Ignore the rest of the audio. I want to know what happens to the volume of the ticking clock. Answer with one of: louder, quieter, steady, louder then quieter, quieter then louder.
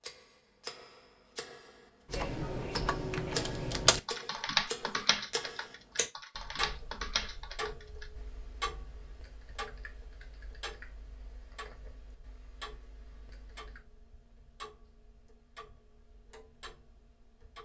quieter.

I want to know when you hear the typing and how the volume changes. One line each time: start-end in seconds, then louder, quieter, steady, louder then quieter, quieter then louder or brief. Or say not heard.
2.1-13.8 quieter.